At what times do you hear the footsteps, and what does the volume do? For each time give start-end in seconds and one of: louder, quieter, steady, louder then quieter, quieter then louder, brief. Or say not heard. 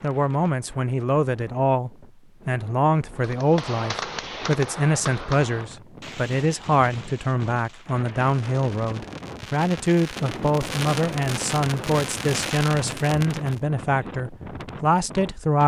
not heard.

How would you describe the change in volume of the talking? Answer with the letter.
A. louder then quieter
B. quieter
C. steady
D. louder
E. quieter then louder
C.